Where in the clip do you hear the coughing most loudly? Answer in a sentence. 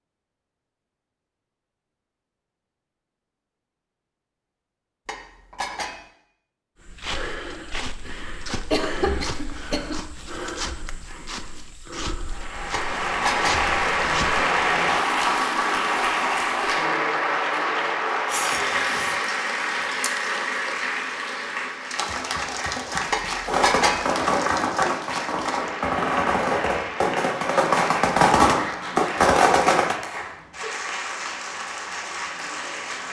The loudest moment of the coughing is at 9 seconds.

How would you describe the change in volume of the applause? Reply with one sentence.
The loudness of the applause goes down.